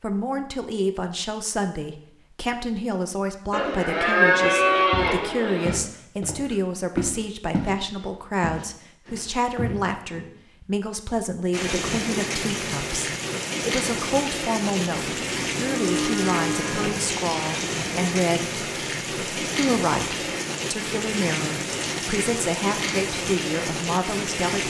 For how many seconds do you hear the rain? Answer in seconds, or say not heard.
13 s.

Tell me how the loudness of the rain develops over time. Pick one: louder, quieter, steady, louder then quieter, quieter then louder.
steady.